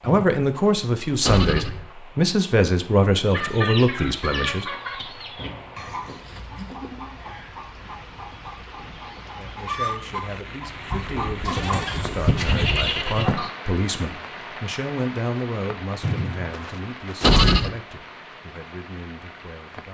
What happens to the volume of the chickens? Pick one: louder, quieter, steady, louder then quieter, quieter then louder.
quieter then louder.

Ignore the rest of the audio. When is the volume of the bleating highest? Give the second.
17 s.